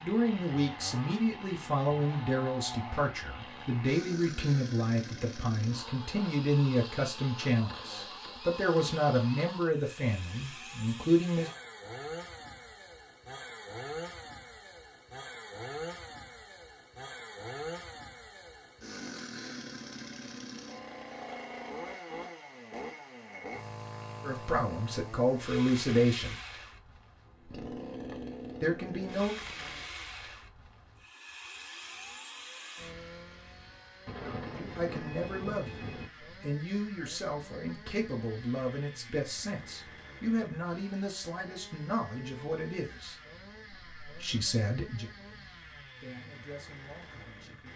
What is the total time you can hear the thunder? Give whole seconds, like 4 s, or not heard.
2 s.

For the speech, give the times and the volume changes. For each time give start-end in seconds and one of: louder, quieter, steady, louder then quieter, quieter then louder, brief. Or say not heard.
0.0-11.5 steady
24.2-26.4 brief
28.6-29.4 brief
34.5-47.7 quieter.